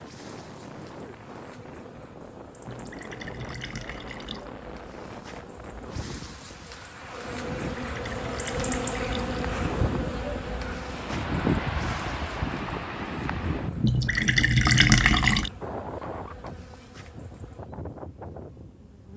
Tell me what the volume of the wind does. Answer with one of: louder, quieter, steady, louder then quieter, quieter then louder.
louder then quieter.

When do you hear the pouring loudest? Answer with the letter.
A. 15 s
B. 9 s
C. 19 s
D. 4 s
A.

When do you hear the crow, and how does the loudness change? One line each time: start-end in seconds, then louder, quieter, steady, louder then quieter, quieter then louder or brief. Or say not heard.
not heard.